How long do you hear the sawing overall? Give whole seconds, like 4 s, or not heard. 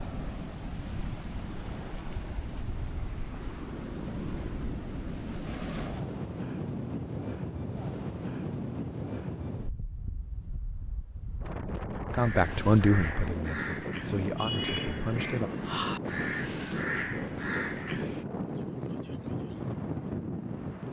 not heard.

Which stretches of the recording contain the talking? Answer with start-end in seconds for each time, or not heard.
12.1-15.5.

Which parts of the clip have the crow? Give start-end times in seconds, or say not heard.
12.1-18.2.